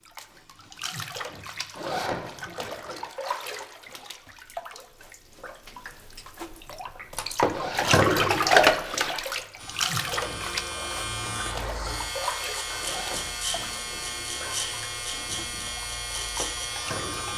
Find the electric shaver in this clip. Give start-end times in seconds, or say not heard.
9.6-17.3.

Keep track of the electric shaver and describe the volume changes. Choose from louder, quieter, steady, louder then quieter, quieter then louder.
steady.